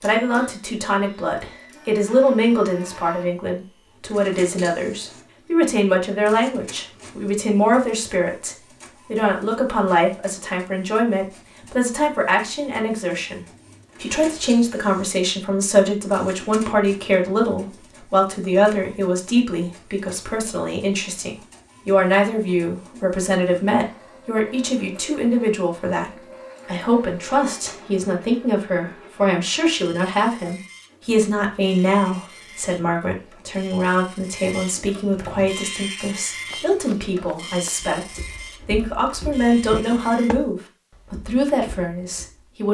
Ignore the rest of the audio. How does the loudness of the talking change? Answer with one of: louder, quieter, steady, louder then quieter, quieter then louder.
steady.